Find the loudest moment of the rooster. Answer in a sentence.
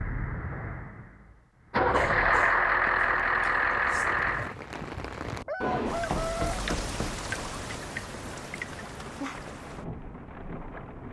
The loudest moment of the rooster is at 6 seconds.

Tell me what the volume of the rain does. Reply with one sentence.
The volume of the rain goes up, then down.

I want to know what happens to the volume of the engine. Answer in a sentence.
The loudness of the engine goes up.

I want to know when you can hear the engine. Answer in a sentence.
You can hear the engine from 0.0 to 4.5 s.